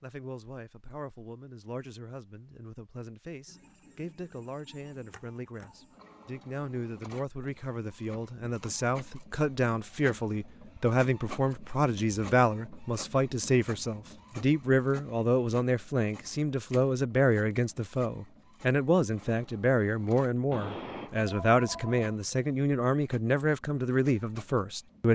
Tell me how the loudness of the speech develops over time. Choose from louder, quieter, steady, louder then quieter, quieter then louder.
louder.